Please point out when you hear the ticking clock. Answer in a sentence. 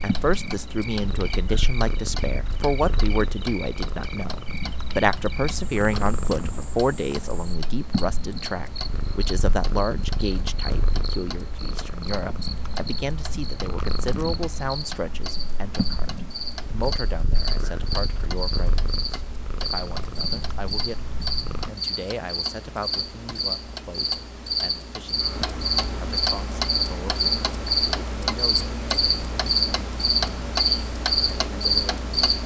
You can hear the ticking clock from 0.0 to 32.4 s.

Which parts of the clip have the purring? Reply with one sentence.
The purring can be heard from 0.0 to 21.7 s.